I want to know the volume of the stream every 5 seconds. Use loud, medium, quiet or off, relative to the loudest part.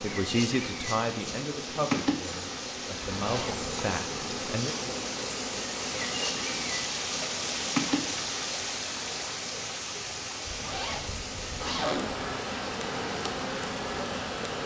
medium, loud, loud.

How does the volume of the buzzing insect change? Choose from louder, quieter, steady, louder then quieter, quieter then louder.
quieter then louder.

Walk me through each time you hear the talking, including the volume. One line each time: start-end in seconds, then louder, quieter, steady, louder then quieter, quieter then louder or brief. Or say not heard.
0.0-4.8 quieter then louder.